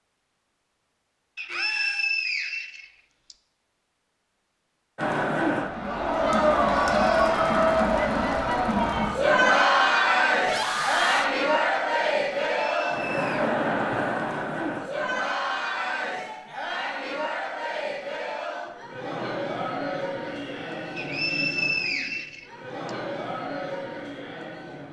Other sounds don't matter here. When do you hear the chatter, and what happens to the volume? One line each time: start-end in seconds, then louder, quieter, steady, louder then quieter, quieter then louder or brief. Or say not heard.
5.0-24.8 quieter.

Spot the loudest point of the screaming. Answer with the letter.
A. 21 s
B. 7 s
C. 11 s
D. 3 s
C.